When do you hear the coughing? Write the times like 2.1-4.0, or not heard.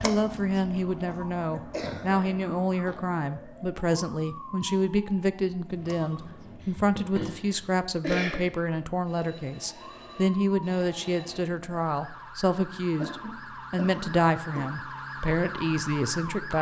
1.1-2.5, 6.6-8.5, 12.9-14.7.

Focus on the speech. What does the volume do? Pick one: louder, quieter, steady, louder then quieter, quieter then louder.
steady.